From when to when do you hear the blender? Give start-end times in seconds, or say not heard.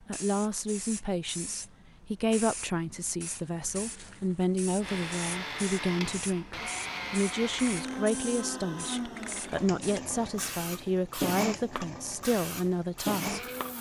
4.8-13.7.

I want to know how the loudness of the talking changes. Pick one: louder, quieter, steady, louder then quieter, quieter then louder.
steady.